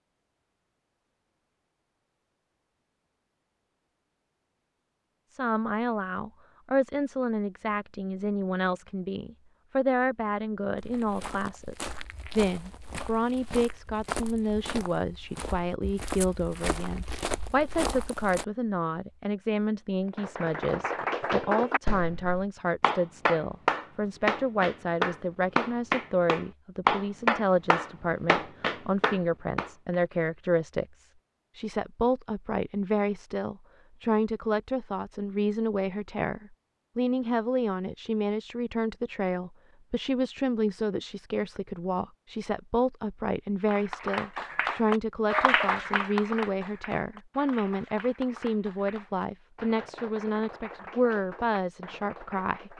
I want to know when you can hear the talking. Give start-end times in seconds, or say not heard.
5.3-52.7.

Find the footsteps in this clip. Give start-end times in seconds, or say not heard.
10.8-18.4.